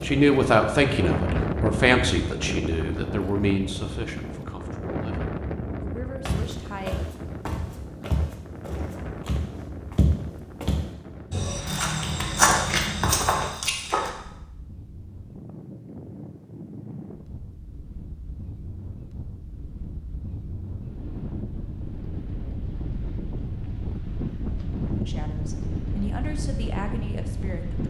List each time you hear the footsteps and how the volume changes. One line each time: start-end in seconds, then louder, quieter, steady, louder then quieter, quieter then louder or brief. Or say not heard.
6.2-14.1 louder.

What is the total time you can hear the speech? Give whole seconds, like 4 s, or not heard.
10 s.